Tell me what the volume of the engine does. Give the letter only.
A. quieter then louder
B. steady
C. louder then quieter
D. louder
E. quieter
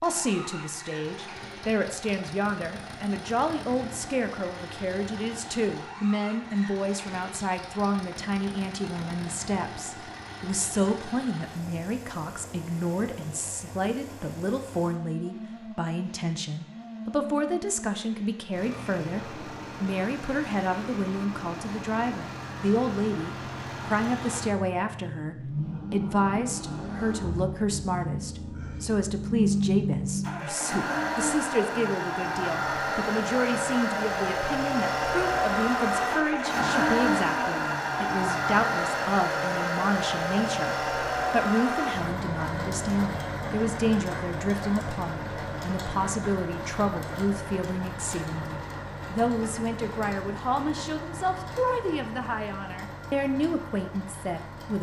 C.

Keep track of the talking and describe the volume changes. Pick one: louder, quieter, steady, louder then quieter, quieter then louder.
steady.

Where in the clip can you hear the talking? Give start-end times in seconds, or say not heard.
0.0-54.7.